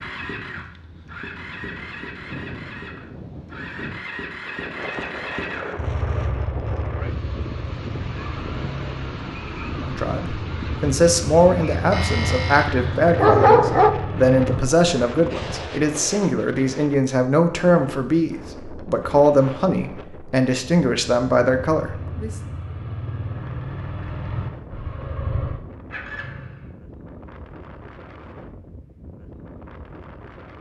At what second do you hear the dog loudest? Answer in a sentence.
The loudest moment of the dog is at 13 seconds.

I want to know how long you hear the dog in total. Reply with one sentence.
The dog can be heard for 2 seconds in total.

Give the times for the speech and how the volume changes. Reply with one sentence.
The speech can be heard from 9.8 to 22.3 s, at a steady volume.